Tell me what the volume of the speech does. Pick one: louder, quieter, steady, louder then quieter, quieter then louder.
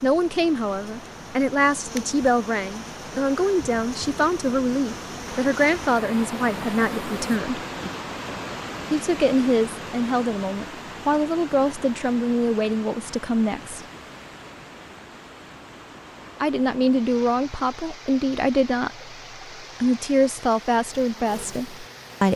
steady.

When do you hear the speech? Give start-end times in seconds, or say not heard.
0.0-7.6, 8.9-13.8, 16.4-22.3.